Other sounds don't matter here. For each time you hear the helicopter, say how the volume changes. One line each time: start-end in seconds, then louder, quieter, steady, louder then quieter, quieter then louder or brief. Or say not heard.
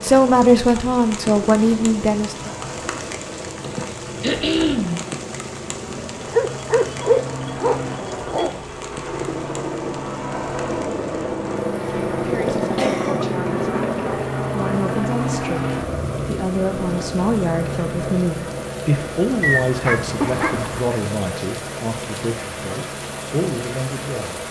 0.0-24.4 louder then quieter.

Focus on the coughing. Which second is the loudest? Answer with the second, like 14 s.
5 s.